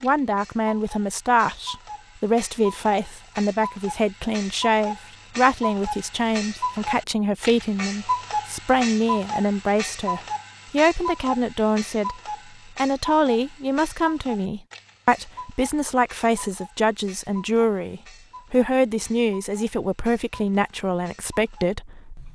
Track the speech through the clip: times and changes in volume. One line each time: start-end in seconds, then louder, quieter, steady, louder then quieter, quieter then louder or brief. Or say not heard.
0.0-22.2 steady.